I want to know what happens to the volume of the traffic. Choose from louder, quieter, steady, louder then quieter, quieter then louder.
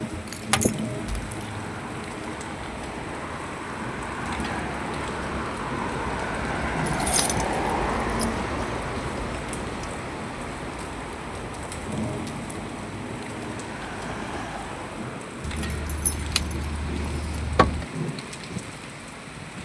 louder then quieter.